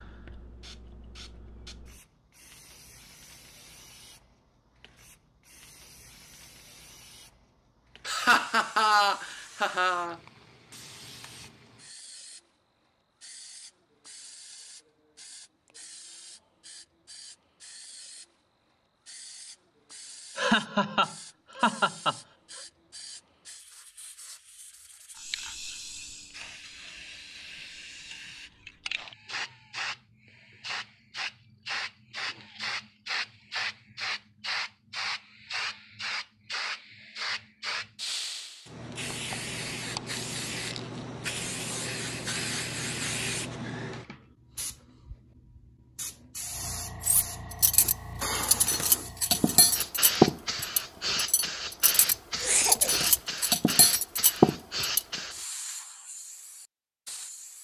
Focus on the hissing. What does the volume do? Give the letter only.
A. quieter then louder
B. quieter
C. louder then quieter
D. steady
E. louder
E.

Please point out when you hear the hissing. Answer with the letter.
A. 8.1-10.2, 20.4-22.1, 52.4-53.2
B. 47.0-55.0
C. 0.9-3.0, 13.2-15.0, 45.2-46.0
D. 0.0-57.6
D.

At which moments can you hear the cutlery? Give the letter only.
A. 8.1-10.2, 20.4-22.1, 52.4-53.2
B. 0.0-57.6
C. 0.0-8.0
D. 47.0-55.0
D.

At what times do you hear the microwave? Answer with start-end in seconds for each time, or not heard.
not heard.